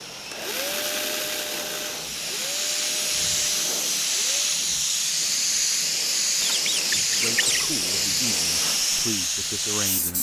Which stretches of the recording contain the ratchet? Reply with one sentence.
You can't hear the ratchet here.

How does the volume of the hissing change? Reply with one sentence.
The loudness of the hissing goes up.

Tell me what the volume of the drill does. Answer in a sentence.
The loudness of the drill goes down.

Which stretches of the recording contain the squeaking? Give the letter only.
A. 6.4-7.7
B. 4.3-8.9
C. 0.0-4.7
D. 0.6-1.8
A.